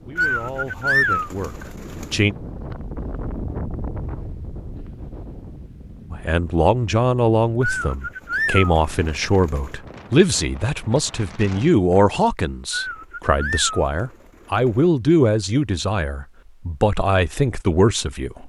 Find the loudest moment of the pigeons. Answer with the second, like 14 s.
1 s.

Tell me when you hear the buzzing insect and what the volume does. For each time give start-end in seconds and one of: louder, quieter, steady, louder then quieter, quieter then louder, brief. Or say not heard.
not heard.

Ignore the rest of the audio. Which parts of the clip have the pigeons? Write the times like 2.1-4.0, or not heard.
0.1-2.2, 7.6-9.8, 12.7-14.9.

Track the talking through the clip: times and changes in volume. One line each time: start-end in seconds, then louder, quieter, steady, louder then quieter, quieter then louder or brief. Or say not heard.
0.1-2.4 brief
6.1-18.4 steady.